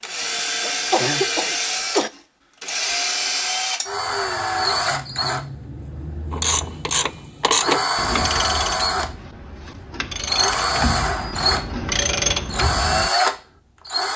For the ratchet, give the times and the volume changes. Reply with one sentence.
You can hear the ratchet from 6.3 to 13.1 s, getting quieter then louder.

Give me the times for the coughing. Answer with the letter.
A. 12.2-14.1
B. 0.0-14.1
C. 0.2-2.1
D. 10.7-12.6
C.